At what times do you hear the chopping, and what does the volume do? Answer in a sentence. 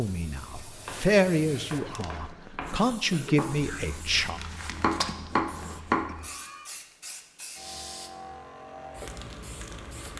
You can hear the chopping from 0.7 to 6.2 s, getting louder.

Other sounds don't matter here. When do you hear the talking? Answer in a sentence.
You can hear the talking from 0.0 to 4.4 s.